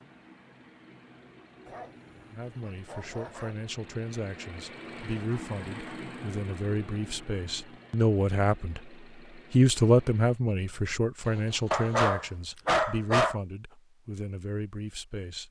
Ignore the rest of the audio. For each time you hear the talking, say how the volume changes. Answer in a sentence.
You can hear the talking from 2.3 to 8.9 s, getting louder; and from 9.5 to 15.4 s, getting quieter.